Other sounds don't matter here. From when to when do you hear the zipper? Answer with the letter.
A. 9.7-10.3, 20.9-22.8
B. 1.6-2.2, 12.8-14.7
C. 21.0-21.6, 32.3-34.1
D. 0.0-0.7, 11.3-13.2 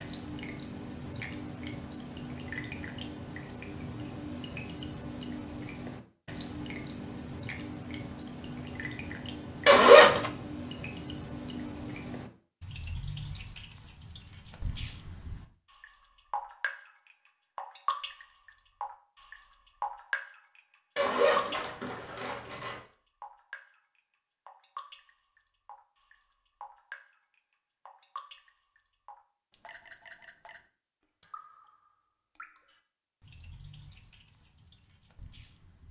A.